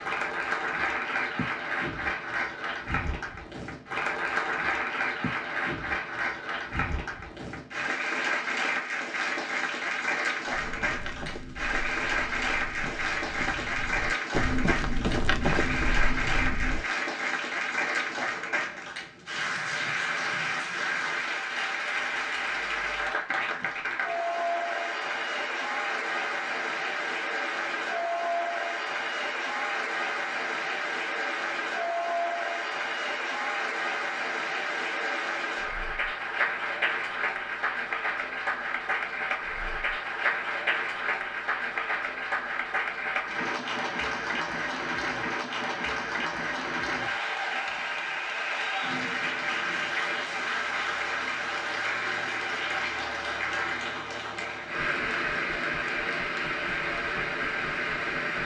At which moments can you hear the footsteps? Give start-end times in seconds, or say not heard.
10.4-16.9.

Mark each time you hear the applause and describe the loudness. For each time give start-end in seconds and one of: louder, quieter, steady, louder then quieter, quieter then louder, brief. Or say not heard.
0.0-58.4 steady.